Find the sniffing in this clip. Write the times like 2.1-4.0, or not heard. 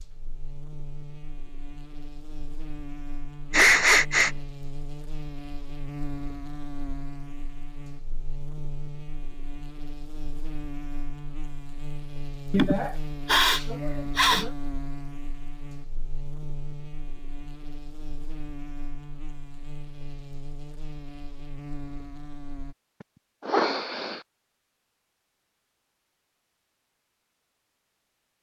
3.5-4.3, 12.5-14.5, 23.4-24.2.